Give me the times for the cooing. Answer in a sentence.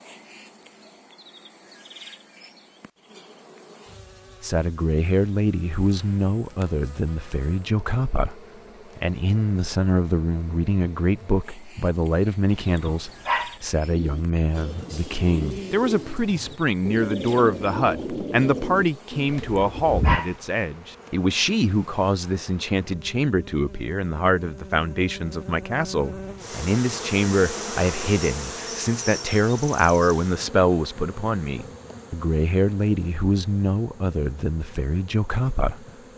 You can hear the cooing from 13.8 to 20.2 s.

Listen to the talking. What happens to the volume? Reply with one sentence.
The volume of the talking stays about the same.